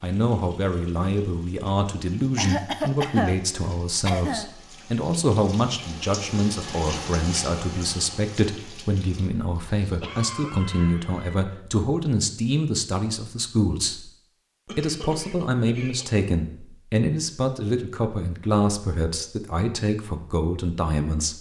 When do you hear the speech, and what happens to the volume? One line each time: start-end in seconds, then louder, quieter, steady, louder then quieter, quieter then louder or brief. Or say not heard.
0.0-14.1 steady
14.8-21.3 steady.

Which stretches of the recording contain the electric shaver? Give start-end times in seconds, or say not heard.
not heard.